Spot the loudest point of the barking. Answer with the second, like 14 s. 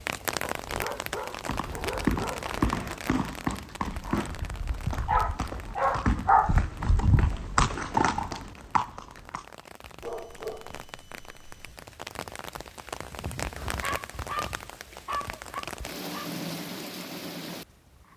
6 s.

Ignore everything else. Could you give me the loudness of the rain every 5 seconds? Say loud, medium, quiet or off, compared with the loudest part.
loud, quiet, loud, loud.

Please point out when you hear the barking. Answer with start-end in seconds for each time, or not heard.
0.6-3.0, 5.0-6.5, 10.0-11.8, 13.8-16.3.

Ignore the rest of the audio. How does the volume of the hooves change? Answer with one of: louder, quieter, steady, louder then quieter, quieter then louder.
quieter then louder.